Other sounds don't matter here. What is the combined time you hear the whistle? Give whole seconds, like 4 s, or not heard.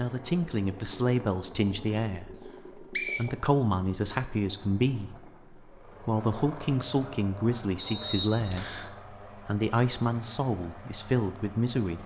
2 s.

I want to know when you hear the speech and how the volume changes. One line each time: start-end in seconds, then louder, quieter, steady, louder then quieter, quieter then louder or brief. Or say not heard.
0.0-12.0 steady.